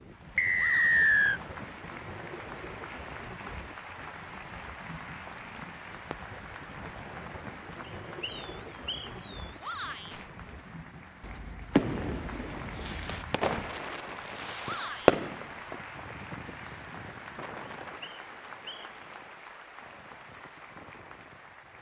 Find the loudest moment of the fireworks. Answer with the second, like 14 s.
15 s.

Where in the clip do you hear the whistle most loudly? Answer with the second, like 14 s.
1 s.